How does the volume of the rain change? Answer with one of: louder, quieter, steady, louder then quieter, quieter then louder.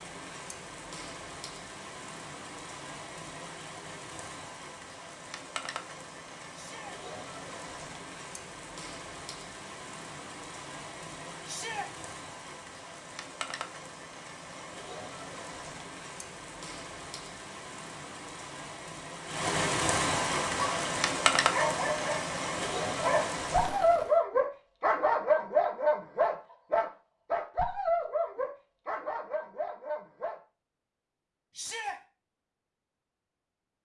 louder.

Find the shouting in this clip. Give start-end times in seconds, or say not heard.
6.5-7.0, 11.4-11.9, 31.6-32.0.